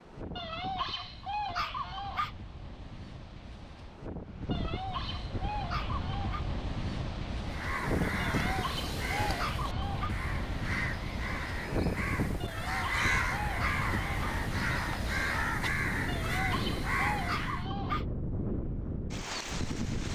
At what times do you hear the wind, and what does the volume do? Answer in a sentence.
The wind can be heard from 0.0 to 20.1 s, getting louder.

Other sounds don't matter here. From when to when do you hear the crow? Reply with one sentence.
The crow can be heard from 7.5 to 17.6 s.